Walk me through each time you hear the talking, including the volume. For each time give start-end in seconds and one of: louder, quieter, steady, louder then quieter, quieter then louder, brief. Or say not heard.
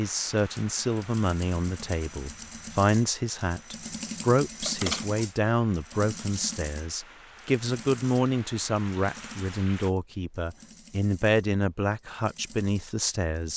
0.0-13.5 steady.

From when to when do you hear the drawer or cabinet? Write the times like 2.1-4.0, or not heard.
not heard.